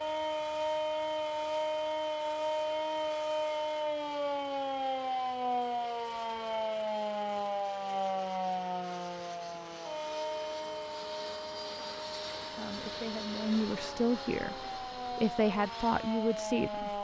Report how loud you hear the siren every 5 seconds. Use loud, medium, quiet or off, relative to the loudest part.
loud, loud, medium, medium.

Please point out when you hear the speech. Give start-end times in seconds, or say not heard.
12.4-16.9.